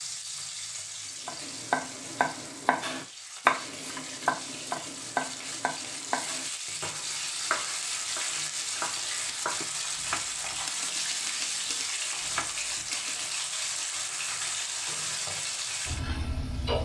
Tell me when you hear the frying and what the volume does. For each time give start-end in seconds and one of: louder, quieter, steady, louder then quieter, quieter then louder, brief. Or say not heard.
0.0-16.8 louder.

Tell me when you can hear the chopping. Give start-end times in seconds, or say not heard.
1.2-13.4.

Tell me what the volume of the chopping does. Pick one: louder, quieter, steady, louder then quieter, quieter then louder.
quieter.